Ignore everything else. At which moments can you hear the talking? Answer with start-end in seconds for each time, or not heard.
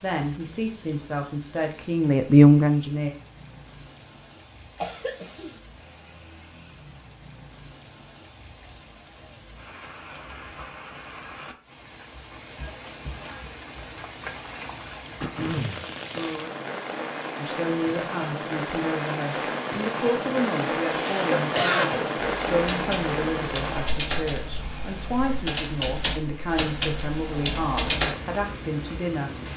0.0-3.1, 17.4-29.5.